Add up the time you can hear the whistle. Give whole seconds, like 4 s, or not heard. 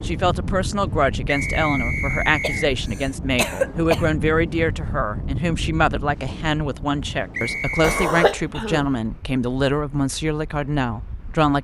2 s.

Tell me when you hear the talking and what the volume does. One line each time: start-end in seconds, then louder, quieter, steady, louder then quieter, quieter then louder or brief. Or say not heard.
0.0-11.6 steady.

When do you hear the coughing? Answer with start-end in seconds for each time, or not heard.
2.4-4.0, 7.8-8.8.